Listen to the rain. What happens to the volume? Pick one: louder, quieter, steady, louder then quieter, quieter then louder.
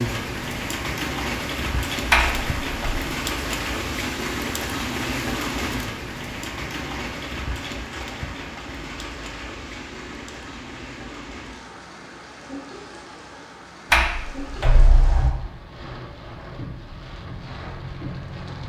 quieter.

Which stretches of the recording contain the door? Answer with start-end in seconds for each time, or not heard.
2.1-3.0, 13.9-15.3.